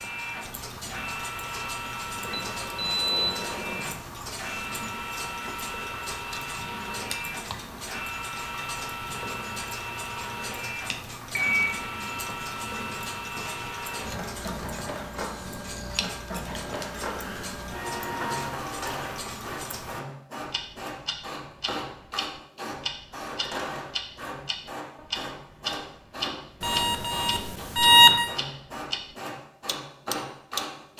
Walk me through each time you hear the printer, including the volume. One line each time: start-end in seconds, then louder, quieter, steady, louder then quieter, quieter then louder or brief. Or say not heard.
0.0-30.9 steady.